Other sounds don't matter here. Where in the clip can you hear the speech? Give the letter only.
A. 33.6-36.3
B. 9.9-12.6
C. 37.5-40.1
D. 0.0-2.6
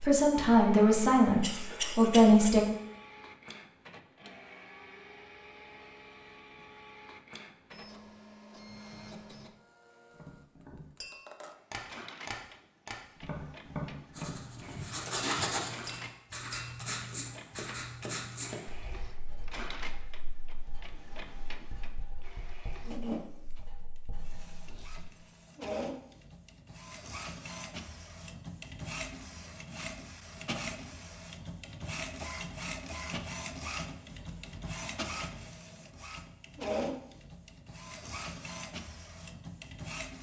D.